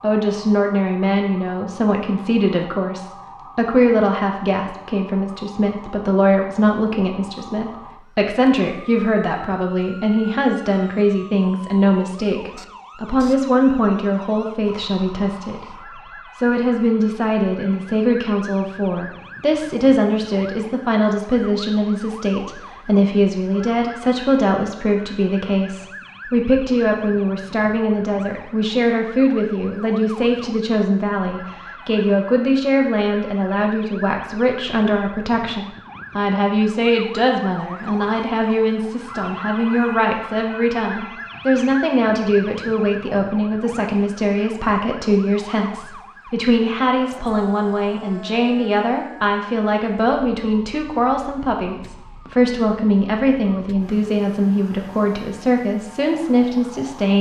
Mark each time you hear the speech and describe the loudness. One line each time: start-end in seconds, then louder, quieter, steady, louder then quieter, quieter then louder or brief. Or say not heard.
0.0-57.1 steady.